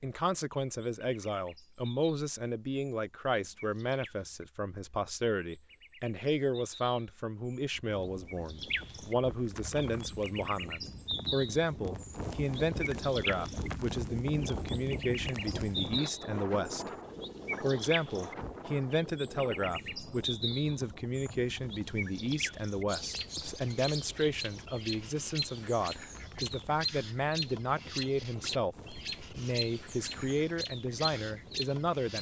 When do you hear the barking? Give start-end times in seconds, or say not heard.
not heard.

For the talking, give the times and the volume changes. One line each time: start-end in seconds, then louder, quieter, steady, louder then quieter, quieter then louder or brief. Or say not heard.
0.0-16.9 steady
17.6-32.1 steady.